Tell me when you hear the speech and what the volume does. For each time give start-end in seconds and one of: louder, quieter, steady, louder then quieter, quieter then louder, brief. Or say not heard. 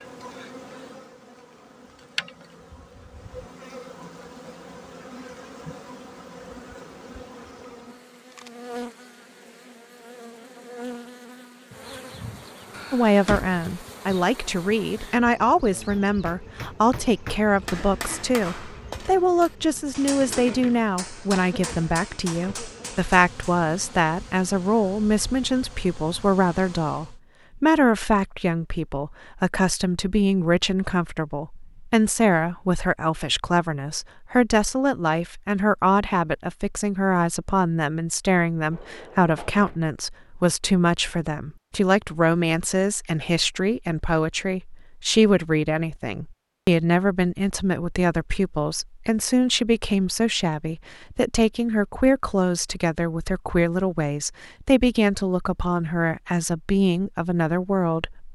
12.9-58.3 steady.